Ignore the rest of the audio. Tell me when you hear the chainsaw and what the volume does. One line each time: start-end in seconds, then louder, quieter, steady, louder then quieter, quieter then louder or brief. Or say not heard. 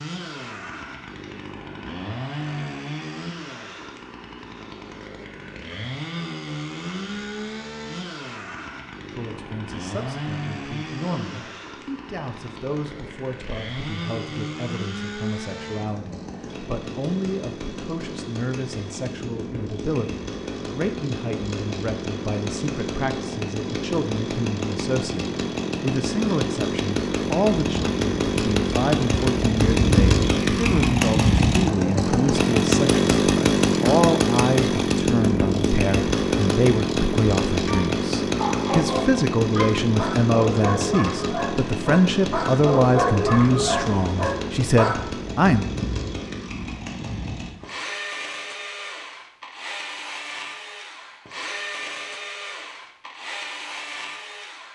0.0-54.6 louder then quieter.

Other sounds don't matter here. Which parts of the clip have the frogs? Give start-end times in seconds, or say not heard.
not heard.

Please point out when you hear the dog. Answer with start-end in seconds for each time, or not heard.
37.6-45.0.